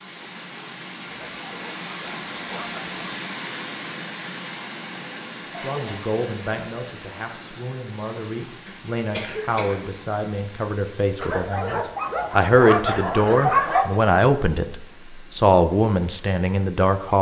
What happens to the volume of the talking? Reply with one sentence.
The loudness of the talking goes up.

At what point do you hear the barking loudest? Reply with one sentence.
The volume of the barking peaks at 14 seconds.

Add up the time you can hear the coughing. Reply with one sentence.
The coughing can be heard for 2 seconds in total.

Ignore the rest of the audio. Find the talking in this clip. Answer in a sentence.
The talking can be heard from 5.6 to 17.1 s.